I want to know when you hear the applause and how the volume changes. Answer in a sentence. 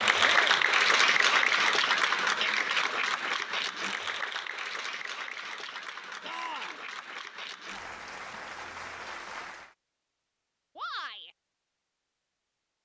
The applause can be heard from 0.0 to 9.8 s, getting quieter.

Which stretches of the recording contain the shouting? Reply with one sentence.
The shouting can be heard from 0.2 to 0.7 s, from 6.2 to 6.8 s and from 10.8 to 11.3 s.